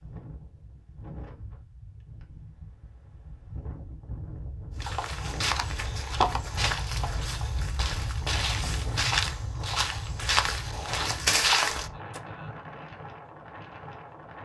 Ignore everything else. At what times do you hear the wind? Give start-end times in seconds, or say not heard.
0.0-14.4.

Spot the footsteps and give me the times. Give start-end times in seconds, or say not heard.
4.8-12.2.